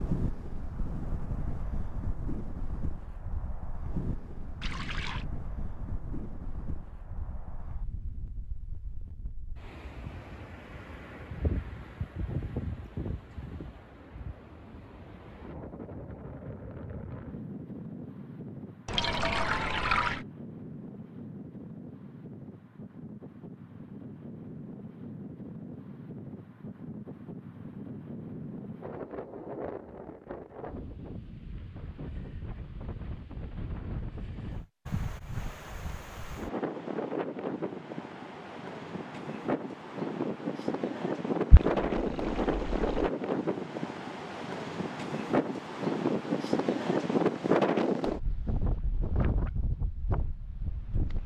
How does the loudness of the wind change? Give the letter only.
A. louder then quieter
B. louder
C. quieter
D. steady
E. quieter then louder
B.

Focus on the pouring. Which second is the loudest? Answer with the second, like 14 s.
20 s.